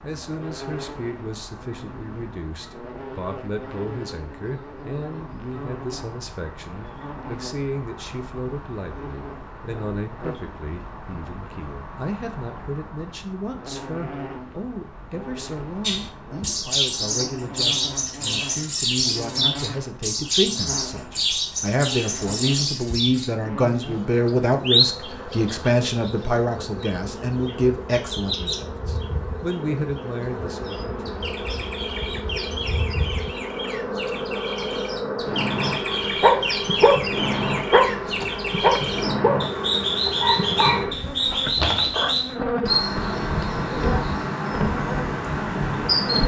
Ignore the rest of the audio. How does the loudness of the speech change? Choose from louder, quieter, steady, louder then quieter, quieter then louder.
louder.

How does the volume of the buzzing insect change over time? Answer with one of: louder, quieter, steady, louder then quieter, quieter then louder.
louder.